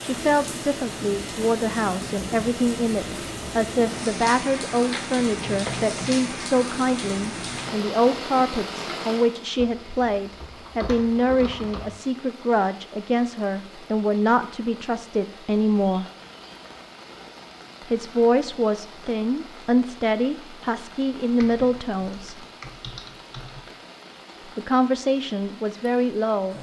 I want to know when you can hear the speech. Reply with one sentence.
The speech can be heard from 0.0 to 16.1 s, from 17.9 to 22.4 s and from 24.6 to 26.5 s.